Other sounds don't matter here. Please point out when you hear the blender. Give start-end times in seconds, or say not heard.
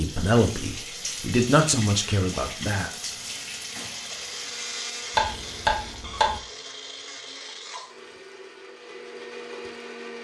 0.0-10.1.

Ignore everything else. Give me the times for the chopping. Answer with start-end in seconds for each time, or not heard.
5.1-6.4.